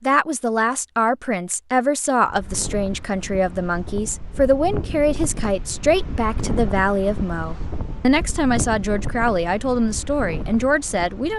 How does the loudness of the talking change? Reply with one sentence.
The volume of the talking stays about the same.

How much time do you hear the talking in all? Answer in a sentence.
The talking can be heard for 11 seconds in total.